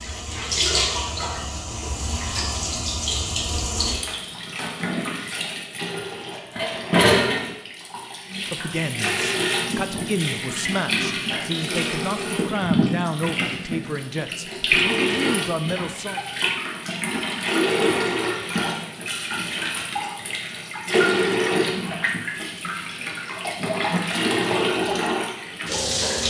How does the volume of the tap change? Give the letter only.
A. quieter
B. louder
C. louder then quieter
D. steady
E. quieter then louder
D.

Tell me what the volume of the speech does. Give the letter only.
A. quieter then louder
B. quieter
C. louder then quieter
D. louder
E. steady
E.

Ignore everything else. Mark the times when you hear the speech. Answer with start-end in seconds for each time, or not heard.
8.2-16.2.